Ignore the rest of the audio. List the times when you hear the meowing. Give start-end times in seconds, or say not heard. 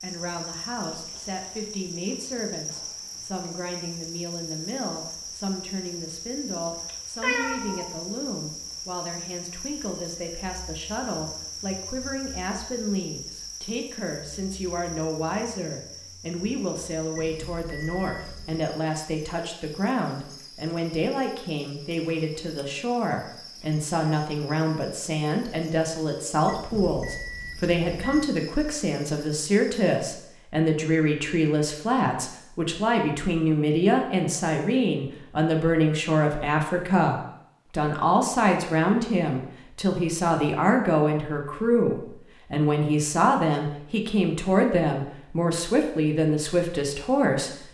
7.2-7.9.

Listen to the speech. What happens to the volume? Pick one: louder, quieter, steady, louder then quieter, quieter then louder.
louder.